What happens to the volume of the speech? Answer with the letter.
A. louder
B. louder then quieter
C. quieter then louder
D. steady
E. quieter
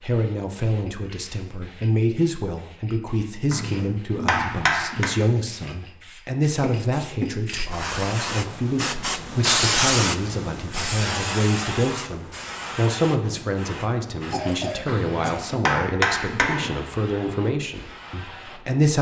D.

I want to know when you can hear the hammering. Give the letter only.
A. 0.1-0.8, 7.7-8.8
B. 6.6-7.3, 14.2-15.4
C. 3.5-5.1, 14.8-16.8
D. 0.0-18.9
C.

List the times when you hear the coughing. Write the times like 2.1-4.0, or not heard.
6.6-7.3, 14.2-15.4.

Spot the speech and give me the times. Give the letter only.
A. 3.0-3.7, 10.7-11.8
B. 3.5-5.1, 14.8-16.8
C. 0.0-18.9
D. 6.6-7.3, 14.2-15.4
C.